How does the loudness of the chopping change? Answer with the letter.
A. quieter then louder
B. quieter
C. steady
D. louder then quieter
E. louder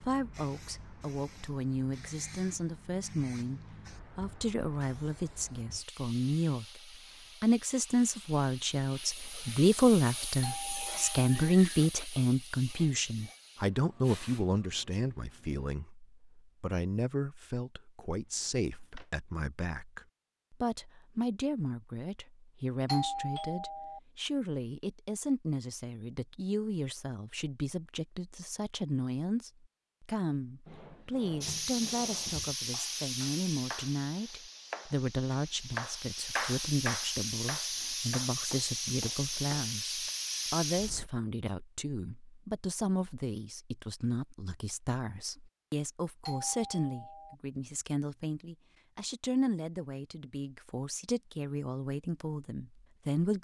D.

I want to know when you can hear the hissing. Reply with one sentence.
You can hear the hissing from 0.0 to 15.7 s and from 31.4 to 41.1 s.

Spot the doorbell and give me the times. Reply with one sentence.
The doorbell can be heard from 10.4 to 11.6 s, from 22.9 to 24.0 s and from 46.2 to 47.4 s.